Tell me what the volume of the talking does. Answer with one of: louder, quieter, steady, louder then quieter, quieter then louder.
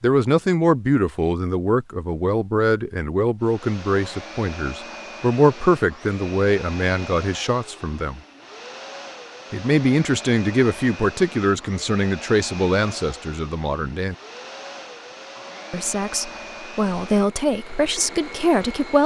steady.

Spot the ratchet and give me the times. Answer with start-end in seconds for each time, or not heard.
not heard.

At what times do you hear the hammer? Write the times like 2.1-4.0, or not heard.
not heard.